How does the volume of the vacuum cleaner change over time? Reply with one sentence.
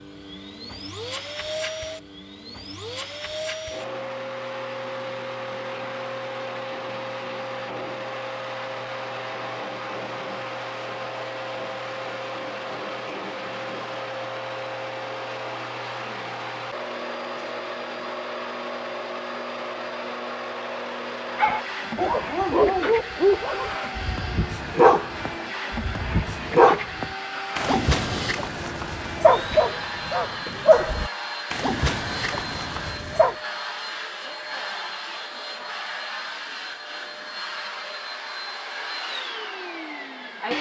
The loudness of the vacuum cleaner stays about the same.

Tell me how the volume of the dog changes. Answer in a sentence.
The volume of the dog stays about the same.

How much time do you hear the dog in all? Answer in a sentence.
You can hear the dog for 12 seconds altogether.